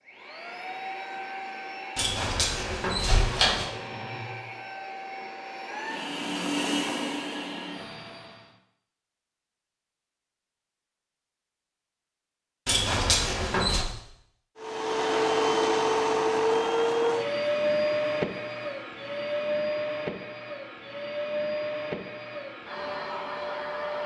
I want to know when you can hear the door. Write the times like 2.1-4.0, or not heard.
1.9-3.7, 12.7-13.8.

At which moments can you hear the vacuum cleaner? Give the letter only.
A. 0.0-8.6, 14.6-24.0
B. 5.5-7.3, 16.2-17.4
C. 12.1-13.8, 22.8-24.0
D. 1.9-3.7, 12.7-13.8
A.